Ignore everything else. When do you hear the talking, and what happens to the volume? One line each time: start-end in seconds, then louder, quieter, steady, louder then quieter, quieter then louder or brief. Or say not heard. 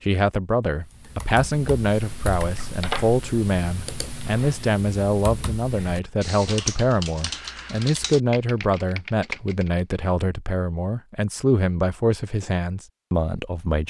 0.0-13.8 steady.